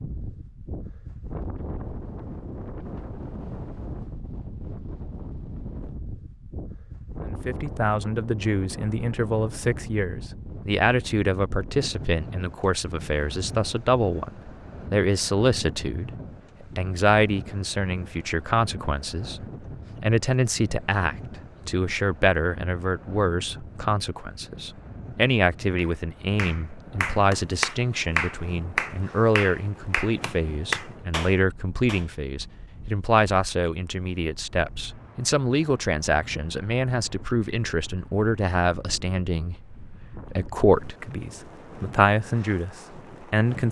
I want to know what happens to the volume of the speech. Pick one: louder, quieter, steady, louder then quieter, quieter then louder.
steady.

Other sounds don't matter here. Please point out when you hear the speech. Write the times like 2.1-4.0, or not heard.
7.2-43.6.